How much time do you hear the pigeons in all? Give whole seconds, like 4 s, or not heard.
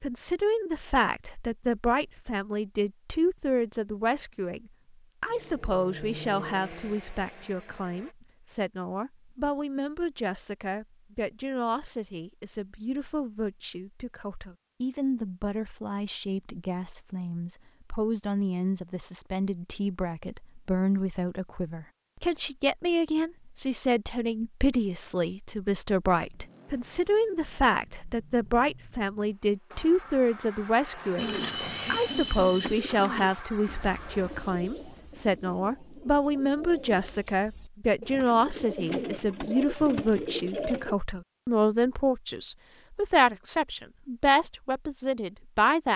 10 s.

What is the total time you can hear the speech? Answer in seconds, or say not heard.
46 s.